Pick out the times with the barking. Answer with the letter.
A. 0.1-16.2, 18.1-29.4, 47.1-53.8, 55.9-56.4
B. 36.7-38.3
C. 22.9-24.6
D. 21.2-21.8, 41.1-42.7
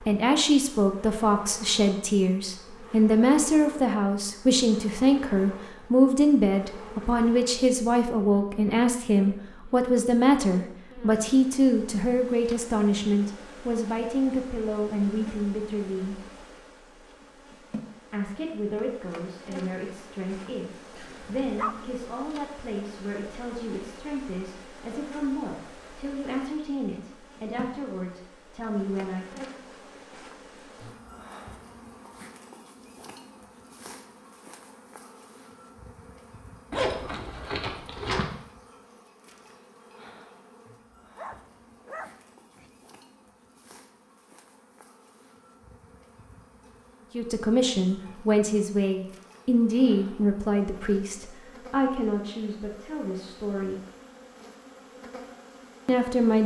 D.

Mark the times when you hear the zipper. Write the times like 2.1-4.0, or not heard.
36.7-38.3.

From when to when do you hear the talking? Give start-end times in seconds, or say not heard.
0.1-16.2, 18.1-29.4, 47.1-53.8, 55.9-56.4.